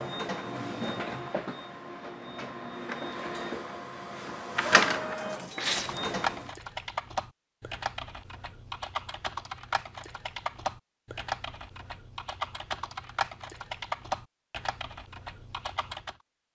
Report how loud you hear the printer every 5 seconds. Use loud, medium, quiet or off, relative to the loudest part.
loud, loud, off, off.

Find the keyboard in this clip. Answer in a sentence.
The keyboard can be heard from 5.8 to 16.1 s.